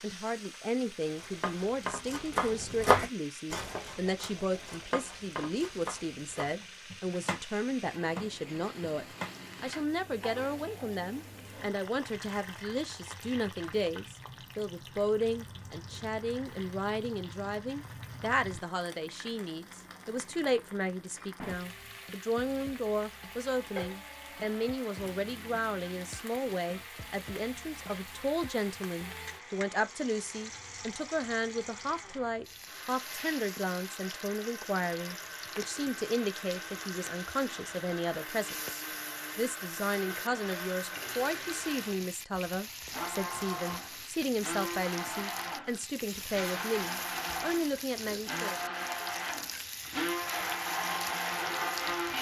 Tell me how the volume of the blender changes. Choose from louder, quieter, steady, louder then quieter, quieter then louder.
louder.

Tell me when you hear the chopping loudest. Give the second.
3 s.